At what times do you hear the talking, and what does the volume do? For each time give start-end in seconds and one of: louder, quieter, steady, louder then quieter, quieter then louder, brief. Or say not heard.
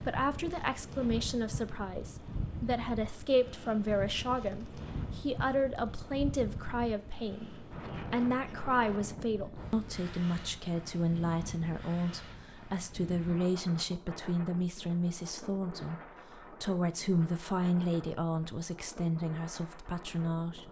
0.0-20.6 steady.